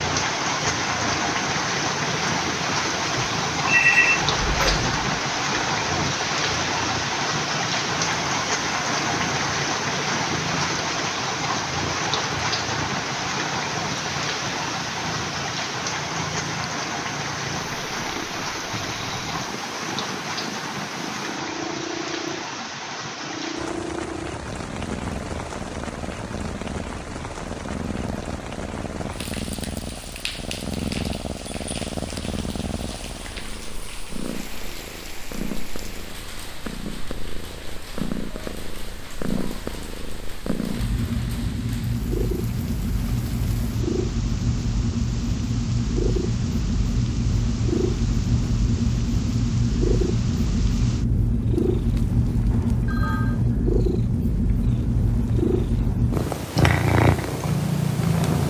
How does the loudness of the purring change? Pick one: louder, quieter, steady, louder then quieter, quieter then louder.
louder.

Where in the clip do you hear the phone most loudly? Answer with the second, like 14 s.
4 s.